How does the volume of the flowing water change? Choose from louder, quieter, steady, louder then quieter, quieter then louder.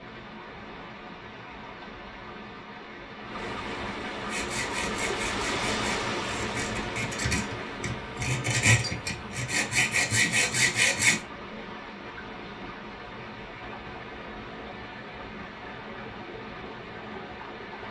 louder then quieter.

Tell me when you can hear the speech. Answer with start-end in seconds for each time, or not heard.
not heard.